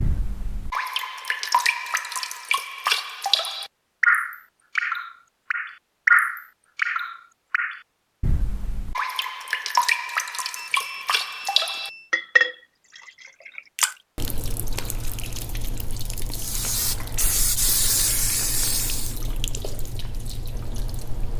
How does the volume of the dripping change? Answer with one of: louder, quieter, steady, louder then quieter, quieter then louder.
quieter.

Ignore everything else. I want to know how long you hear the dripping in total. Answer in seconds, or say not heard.
21 s.